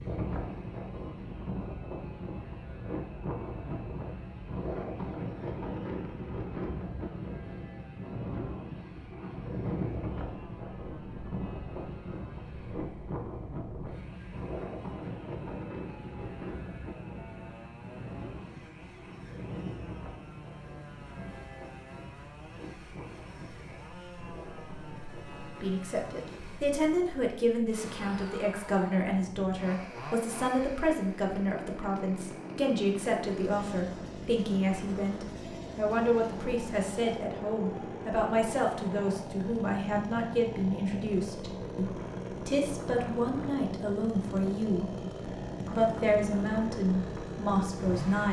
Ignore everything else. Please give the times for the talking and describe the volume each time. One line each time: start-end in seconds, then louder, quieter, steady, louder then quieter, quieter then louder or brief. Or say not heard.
25.6-44.9 steady
45.7-48.2 brief.